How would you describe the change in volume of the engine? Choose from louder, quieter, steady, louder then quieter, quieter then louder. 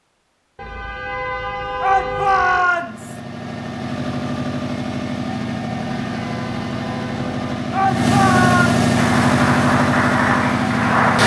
louder.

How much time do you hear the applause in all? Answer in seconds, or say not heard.
2 s.